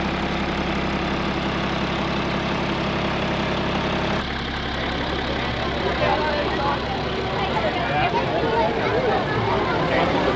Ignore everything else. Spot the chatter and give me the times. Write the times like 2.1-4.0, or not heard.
4.6-10.3.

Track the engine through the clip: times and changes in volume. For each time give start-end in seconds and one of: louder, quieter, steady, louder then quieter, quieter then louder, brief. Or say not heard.
0.0-10.3 quieter.